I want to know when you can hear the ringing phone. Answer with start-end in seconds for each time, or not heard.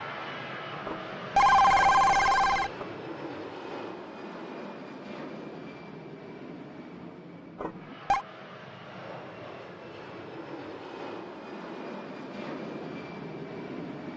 0.8-2.9, 7.6-8.2.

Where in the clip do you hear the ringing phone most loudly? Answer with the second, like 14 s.
2 s.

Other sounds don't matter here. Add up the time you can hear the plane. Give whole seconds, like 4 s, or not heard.
14 s.